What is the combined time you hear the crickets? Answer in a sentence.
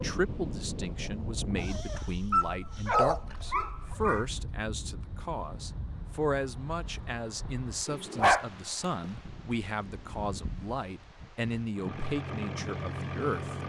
The crickets can't be heard in this clip.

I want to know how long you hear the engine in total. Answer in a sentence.
The engine can be heard for 2 seconds in total.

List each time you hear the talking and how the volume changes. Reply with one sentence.
The talking can be heard from 0.0 to 13.6 s, at a steady volume.